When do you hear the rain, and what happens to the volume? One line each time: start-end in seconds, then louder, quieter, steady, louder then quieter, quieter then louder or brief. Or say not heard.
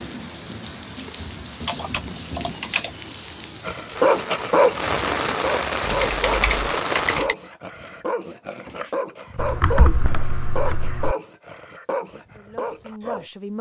0.0-7.2 louder.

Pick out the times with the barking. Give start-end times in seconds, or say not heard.
3.6-13.2.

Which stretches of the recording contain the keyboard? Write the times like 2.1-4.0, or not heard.
1.6-2.9, 5.9-7.3, 9.3-11.2.